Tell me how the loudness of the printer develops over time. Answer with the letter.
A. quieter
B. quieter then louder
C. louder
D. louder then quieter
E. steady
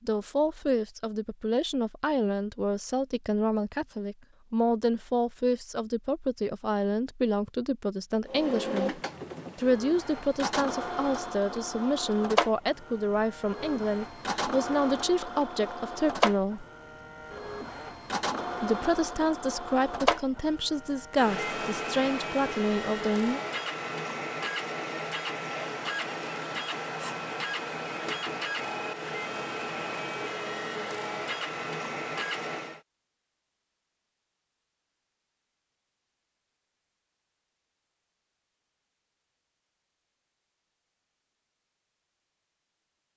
E.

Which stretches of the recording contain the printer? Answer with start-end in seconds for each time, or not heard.
8.2-32.8.